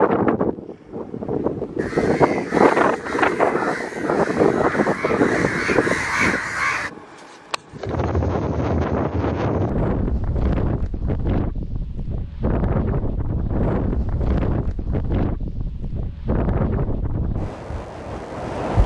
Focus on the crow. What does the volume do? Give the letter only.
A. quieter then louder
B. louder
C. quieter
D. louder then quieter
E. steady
B.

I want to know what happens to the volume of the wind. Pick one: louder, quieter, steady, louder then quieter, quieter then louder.
quieter.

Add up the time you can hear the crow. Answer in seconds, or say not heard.
5 s.